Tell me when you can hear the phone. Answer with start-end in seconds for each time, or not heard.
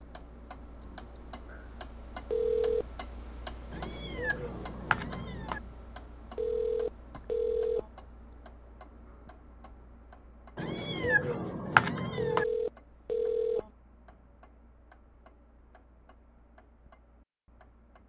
2.3-2.9, 6.3-7.8, 12.2-13.7.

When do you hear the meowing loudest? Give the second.
12 s.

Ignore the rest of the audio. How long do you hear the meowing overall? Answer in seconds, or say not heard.
4 s.